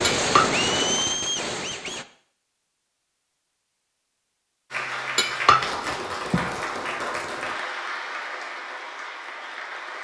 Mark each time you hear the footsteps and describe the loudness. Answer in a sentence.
The footsteps can't be heard in this clip.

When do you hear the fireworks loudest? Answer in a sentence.
The loudest moment of the fireworks is at 1 second.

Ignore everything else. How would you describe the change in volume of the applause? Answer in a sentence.
The loudness of the applause goes down.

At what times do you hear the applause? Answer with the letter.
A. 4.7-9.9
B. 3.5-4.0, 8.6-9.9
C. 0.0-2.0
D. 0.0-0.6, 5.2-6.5
A.